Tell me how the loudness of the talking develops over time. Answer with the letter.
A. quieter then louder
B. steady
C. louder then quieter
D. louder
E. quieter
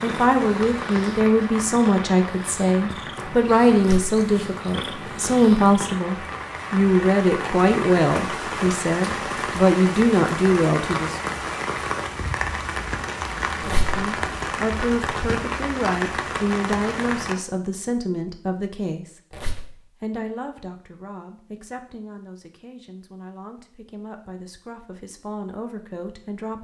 E.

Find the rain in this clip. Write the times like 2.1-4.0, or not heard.
0.0-17.4.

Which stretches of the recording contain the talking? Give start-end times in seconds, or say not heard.
0.0-11.2, 13.6-19.2, 19.9-26.6.